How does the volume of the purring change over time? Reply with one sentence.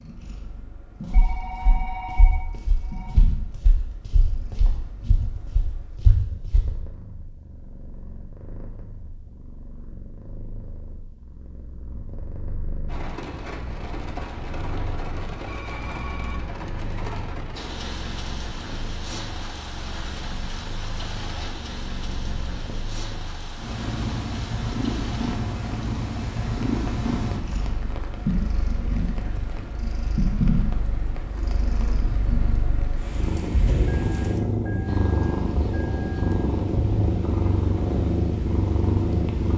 The volume of the purring goes up.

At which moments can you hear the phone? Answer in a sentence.
You can hear the phone from 1.1 to 3.1 s, from 15.4 to 16.6 s and from 33.9 to 36.4 s.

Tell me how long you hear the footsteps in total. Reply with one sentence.
The footsteps can be heard for 6 seconds in total.